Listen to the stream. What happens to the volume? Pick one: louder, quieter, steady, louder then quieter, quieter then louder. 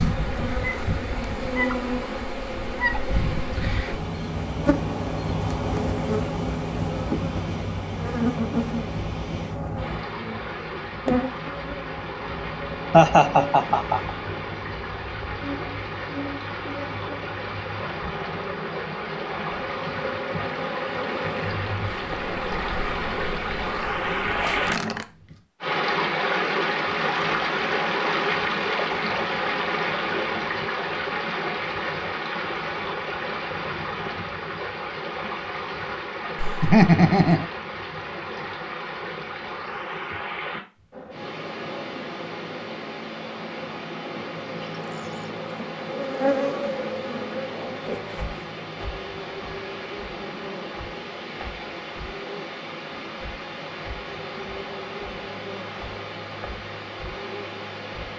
louder then quieter.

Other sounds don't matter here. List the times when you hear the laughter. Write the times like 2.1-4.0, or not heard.
12.9-14.1, 36.4-37.5.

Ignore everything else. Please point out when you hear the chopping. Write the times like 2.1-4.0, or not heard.
not heard.